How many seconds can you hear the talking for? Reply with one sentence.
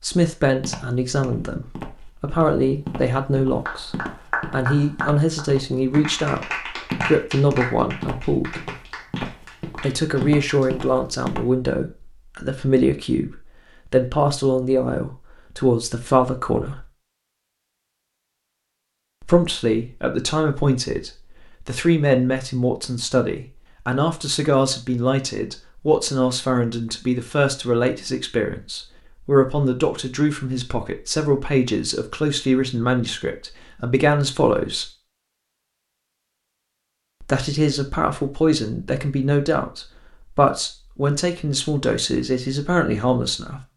The talking can be heard for 38 seconds in total.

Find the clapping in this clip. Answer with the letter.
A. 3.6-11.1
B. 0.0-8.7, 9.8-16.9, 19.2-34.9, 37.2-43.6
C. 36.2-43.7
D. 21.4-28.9
A.